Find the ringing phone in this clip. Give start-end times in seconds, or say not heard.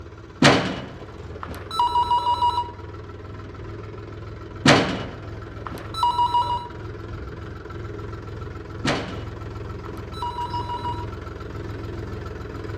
0.4-2.6, 4.7-6.6, 8.8-11.1.